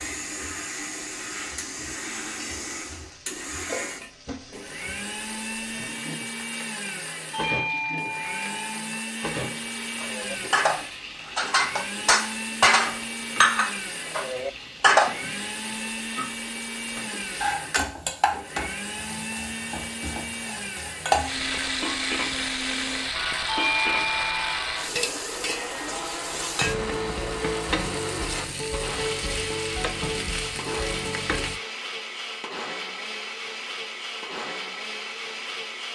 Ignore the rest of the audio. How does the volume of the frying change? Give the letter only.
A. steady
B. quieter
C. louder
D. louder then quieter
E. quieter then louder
C.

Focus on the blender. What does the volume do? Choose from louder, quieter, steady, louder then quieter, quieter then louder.
steady.